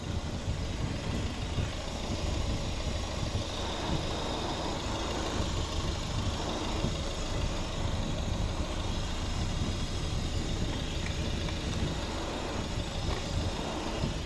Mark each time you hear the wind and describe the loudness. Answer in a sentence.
You can hear the wind from 0.0 to 14.2 s, at a steady volume.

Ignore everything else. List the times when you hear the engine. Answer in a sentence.
You can hear the engine from 0.0 to 14.2 s.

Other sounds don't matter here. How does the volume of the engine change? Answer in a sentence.
The volume of the engine stays about the same.